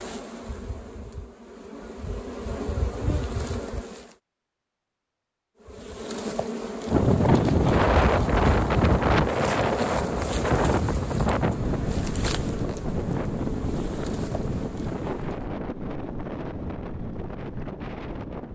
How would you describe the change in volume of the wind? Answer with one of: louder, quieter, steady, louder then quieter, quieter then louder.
quieter.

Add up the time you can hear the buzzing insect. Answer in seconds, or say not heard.
14 s.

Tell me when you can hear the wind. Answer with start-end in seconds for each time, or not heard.
6.8-18.4.